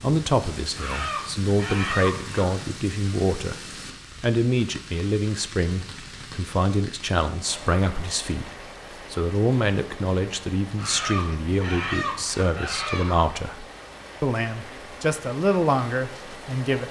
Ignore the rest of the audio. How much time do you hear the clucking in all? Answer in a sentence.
The clucking can be heard for 4 seconds in total.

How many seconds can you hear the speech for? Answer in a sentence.
You can hear the speech for 16 seconds altogether.